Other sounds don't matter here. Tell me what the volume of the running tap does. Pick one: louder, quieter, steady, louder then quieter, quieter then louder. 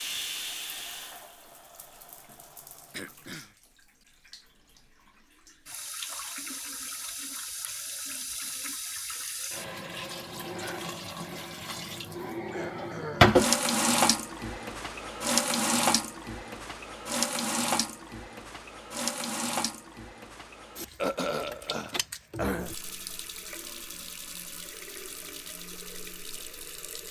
louder then quieter.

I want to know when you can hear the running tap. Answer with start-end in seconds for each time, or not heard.
0.0-27.0.